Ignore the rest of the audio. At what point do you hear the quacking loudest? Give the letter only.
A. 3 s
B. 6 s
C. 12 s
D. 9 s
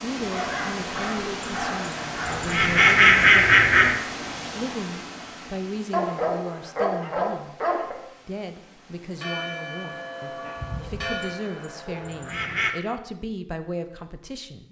A.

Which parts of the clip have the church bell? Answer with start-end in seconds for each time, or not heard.
9.0-12.6.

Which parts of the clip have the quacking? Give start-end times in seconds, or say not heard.
1.4-4.0, 11.2-12.8.